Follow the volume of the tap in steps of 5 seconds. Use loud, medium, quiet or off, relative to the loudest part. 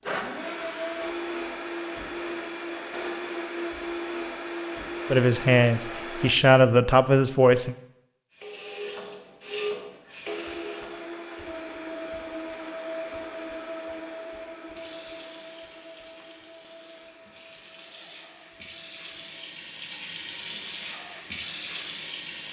off, loud, medium, medium, loud.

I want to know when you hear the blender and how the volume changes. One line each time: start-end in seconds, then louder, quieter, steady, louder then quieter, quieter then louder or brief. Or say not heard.
0.0-6.3 steady
10.2-19.6 quieter.